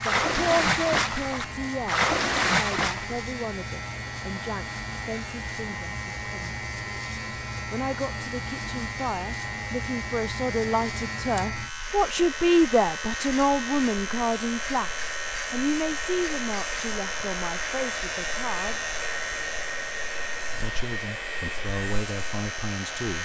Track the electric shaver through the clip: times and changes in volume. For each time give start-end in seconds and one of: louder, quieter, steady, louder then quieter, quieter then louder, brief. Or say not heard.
0.0-23.2 steady.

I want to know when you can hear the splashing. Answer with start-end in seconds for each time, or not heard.
0.0-3.2.